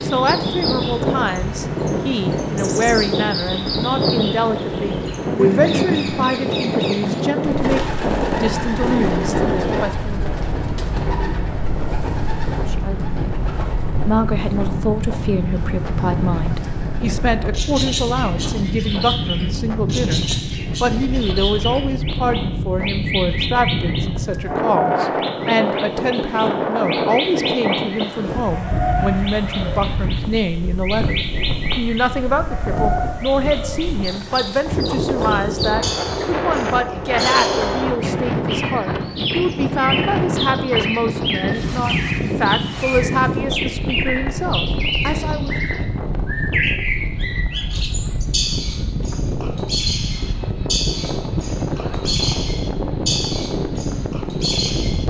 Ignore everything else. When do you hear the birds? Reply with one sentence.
The birds can be heard from 0.0 to 55.0 s.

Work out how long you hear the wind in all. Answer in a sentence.
You can hear the wind for 55 seconds altogether.